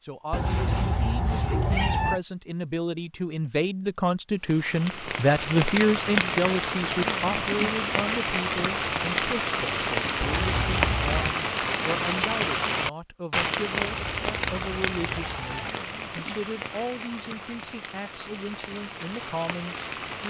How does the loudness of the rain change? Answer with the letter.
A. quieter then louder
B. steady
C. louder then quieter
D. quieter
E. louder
D.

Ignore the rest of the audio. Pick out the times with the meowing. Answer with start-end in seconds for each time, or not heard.
0.3-2.2, 10.2-11.3, 13.9-15.8.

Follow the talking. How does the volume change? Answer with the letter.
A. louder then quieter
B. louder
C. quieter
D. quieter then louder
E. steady
A.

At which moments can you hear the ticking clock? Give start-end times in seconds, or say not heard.
not heard.